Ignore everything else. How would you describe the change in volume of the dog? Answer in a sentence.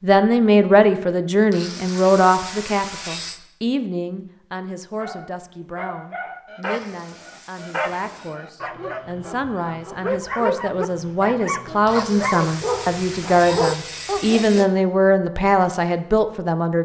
The loudness of the dog goes up.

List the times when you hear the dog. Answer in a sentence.
The dog can be heard from 5.0 to 14.7 s.